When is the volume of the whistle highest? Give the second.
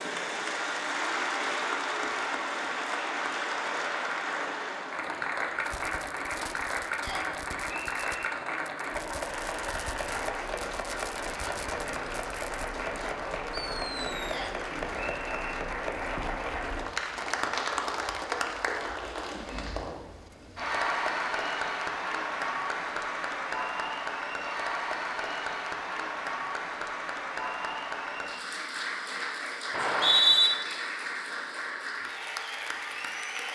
30 s.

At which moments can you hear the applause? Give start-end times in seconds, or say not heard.
0.0-33.5.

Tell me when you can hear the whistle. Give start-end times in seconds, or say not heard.
7.0-8.3, 14.3-15.6, 29.7-30.5.